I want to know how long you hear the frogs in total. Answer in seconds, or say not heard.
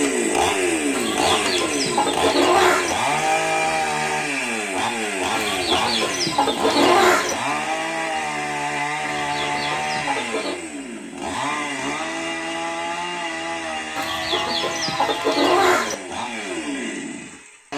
not heard.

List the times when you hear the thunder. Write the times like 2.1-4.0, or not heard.
not heard.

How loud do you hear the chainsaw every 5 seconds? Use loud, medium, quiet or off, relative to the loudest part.
loud, loud, medium, medium.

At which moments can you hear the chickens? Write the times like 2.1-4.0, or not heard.
0.9-3.0, 5.3-7.3, 9.0-10.6, 13.9-15.9.